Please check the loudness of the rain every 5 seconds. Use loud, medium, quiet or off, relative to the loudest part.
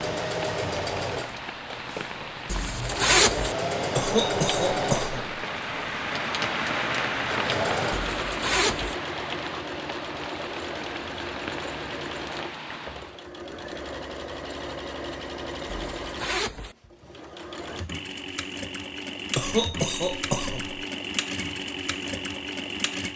medium, loud, medium, off, off.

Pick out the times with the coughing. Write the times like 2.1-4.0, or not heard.
4.0-5.3, 19.4-20.8.